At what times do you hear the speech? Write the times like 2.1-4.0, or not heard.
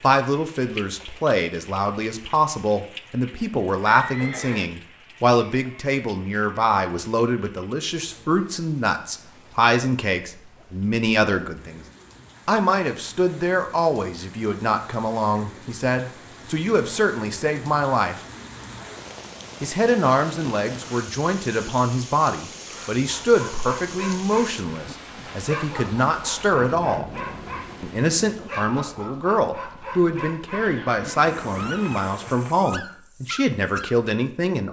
0.0-11.8, 12.4-18.2, 19.6-27.1, 27.8-34.6.